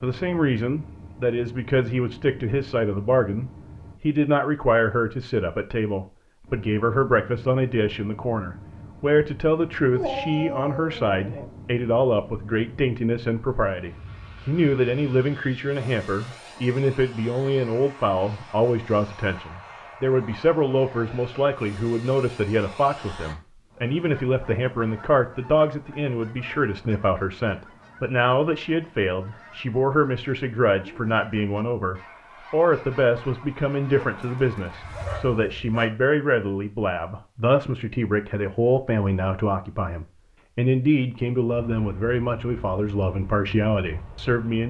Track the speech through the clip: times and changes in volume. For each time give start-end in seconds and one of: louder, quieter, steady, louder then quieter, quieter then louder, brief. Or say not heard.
0.0-44.6 steady.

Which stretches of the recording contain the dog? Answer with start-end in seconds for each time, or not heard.
9.9-11.5, 34.0-36.0.